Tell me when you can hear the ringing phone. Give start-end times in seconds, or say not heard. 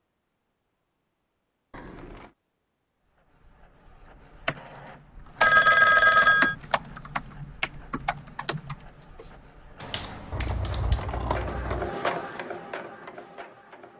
5.4-6.5.